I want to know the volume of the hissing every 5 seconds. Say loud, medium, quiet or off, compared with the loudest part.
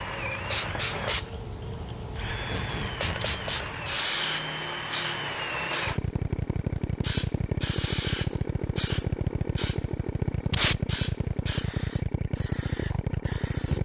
loud, medium, medium.